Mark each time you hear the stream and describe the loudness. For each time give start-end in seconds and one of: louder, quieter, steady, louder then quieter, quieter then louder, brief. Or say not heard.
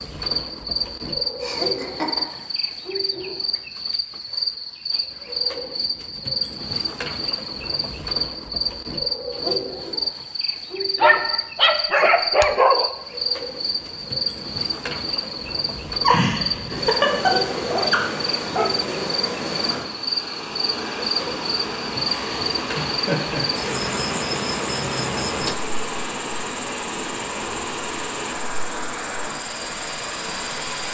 12.8-30.8 louder.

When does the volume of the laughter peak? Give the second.
16 s.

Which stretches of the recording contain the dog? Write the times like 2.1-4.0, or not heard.
10.9-12.9, 17.6-18.9.